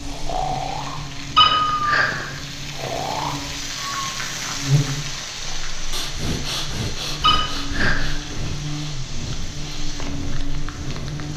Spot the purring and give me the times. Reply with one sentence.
You can't hear the purring here.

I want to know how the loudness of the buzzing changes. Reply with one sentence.
The volume of the buzzing goes up, then down.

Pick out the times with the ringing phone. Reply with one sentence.
The ringing phone can be heard from 1.4 to 2.3 s and from 7.2 to 8.0 s.